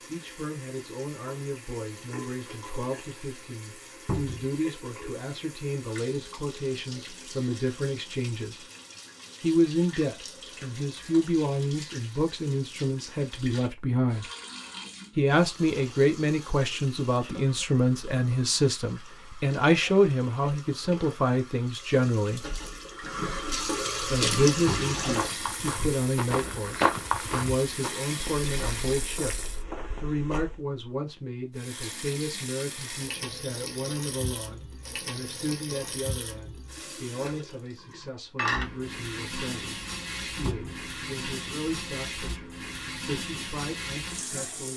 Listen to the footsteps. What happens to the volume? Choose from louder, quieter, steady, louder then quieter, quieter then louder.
louder then quieter.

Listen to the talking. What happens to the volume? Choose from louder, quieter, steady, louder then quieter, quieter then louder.
louder then quieter.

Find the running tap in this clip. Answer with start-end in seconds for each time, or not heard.
0.0-29.6, 31.6-44.7.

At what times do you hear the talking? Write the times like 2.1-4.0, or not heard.
0.1-8.6, 9.4-14.2, 15.2-22.4, 24.1-44.7.